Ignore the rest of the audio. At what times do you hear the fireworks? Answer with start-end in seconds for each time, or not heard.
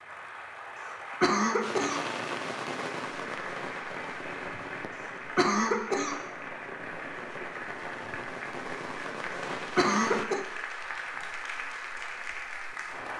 1.6-10.2.